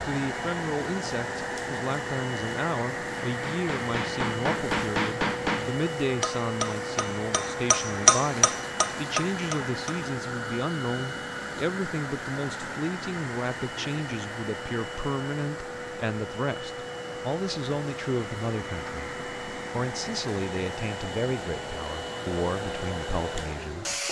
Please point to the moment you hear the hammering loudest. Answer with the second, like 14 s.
8 s.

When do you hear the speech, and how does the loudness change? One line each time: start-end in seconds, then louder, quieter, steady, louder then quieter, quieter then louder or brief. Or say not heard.
0.0-23.9 steady.